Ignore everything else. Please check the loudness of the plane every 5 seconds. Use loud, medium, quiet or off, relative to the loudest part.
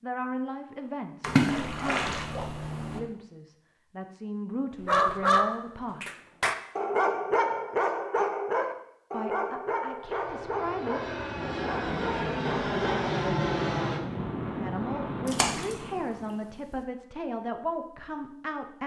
off, off, loud, medium.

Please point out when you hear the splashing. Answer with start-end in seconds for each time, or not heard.
1.2-3.0, 15.2-15.9.